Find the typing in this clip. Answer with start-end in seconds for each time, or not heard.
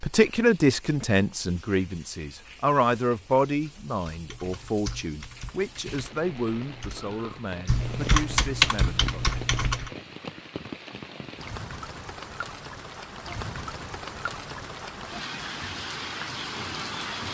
4.0-9.9.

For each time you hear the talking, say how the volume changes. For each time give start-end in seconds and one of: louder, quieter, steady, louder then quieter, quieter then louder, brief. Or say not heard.
0.0-9.2 quieter.